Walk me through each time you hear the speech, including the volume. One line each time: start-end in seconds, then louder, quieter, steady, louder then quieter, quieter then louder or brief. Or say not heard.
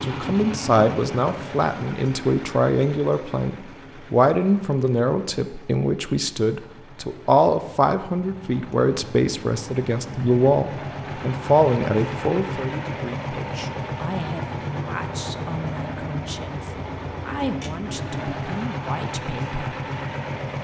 0.0-19.8 quieter.